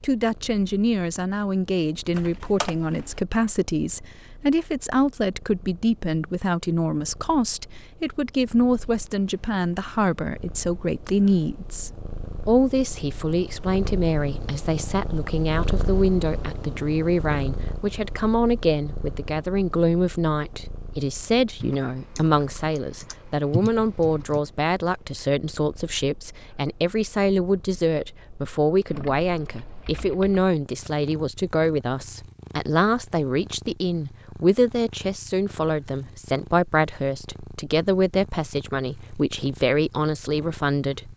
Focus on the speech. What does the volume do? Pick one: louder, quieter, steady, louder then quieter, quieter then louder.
steady.